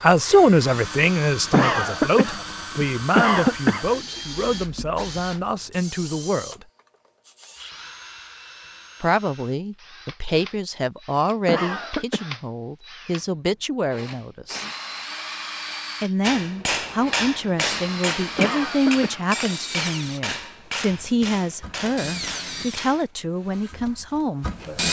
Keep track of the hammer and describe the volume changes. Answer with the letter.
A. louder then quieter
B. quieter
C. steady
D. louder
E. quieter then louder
B.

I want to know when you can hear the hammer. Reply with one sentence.
The hammer can be heard from 16.2 to 23.1 s.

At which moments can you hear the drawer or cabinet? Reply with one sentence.
You can't hear the drawer or cabinet here.